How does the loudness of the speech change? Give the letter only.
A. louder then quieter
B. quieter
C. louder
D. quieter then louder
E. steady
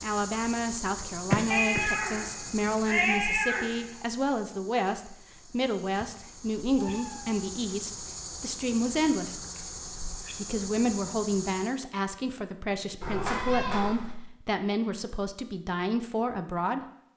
E.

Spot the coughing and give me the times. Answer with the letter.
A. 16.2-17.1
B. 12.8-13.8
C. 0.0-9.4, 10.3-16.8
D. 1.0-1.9
D.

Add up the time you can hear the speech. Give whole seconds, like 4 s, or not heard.
16 s.